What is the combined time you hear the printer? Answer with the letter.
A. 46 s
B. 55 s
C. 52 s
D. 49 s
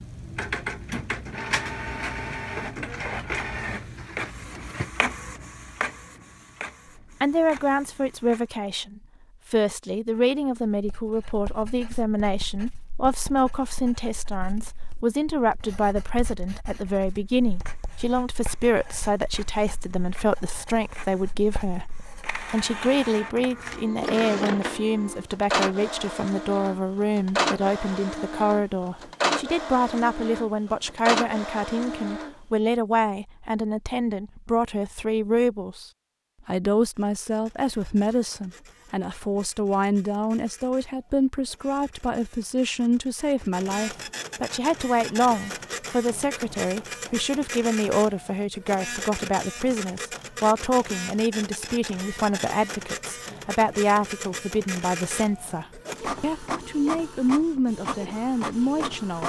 A.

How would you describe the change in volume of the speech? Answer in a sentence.
The loudness of the speech stays about the same.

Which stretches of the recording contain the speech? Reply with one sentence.
You can hear the speech from 7.2 to 59.2 s.